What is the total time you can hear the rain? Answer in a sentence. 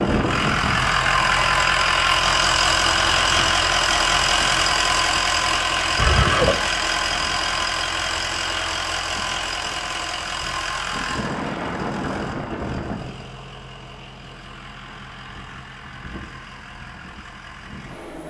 The rain can't be heard in this clip.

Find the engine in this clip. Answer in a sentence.
You can hear the engine from 0.0 to 18.2 s.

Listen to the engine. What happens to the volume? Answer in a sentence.
The loudness of the engine goes down.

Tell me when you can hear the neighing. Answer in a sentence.
You can hear the neighing from 6.0 to 6.6 s.